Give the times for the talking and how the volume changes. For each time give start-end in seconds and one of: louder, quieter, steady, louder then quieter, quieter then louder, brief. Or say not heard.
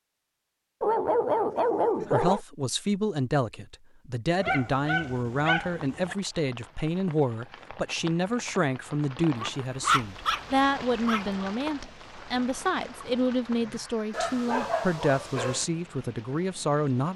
2.0-17.1 steady.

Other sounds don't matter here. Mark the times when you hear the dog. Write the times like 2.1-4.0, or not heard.
0.8-2.4, 4.4-6.2, 9.3-11.2, 14.1-15.7.